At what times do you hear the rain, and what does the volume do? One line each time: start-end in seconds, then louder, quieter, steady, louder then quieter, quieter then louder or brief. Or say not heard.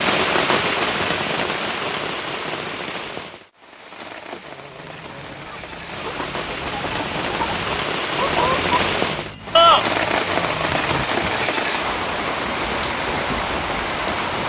0.0-14.4 quieter then louder.